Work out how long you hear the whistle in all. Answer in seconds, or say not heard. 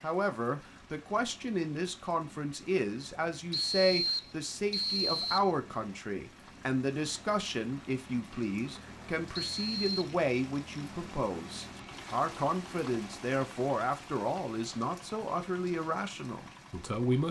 3 s.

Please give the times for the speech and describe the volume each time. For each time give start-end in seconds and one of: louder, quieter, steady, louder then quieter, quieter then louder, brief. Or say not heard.
0.0-17.2 steady.